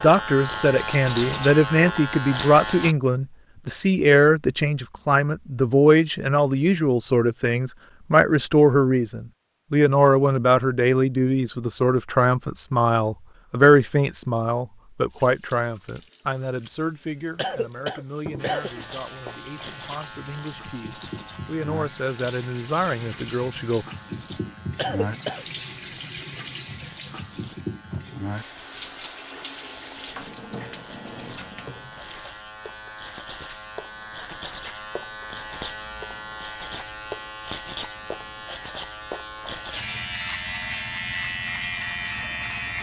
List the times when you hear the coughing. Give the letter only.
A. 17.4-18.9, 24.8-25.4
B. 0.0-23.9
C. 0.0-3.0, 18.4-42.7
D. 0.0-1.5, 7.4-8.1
A.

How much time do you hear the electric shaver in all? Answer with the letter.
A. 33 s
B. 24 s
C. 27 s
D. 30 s
C.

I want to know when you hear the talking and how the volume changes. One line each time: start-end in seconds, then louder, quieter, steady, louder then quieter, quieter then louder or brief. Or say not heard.
0.0-23.9 quieter.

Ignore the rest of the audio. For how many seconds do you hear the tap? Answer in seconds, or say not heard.
17 s.